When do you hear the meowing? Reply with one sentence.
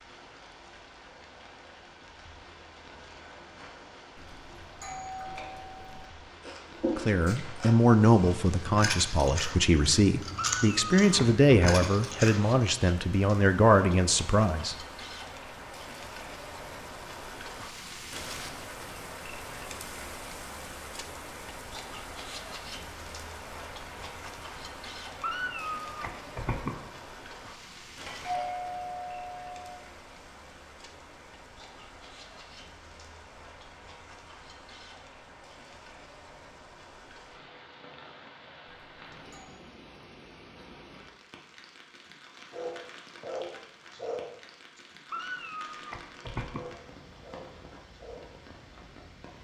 The meowing can be heard from 10.3 to 11.9 s, from 25.2 to 26.8 s and from 45.1 to 46.7 s.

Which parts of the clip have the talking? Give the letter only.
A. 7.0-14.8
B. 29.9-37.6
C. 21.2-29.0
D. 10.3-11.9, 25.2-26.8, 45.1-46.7
A.